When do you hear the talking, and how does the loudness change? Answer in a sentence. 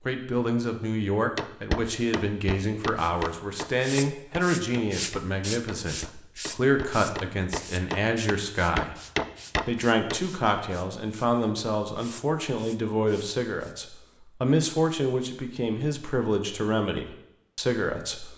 The talking can be heard from 0.1 to 8.9 s, at a steady volume; and from 9.7 to 18.3 s, at a steady volume.